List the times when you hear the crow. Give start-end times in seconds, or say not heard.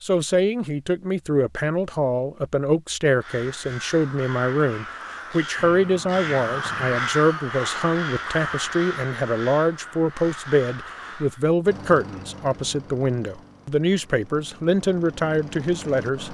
3.0-11.4.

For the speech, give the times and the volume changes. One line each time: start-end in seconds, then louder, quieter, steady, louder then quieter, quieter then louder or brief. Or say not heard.
0.0-16.2 steady.